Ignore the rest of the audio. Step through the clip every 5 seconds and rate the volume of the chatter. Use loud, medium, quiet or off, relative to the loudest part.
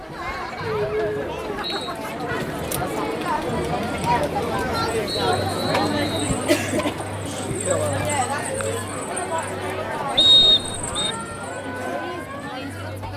loud, loud, medium.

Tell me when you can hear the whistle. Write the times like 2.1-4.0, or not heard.
0.6-1.9, 5.0-6.3, 10.2-11.2.